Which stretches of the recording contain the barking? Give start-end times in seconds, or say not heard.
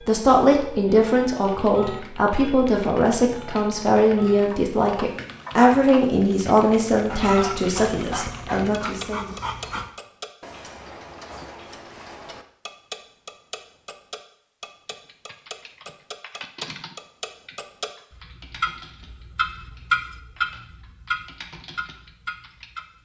7.1-9.9.